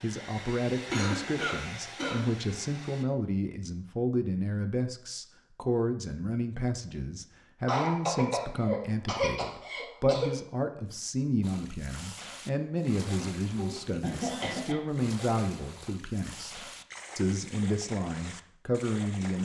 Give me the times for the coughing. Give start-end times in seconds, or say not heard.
0.7-2.2, 7.7-10.3, 13.6-14.8.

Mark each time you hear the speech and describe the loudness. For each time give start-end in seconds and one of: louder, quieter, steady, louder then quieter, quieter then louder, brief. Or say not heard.
0.0-19.4 steady.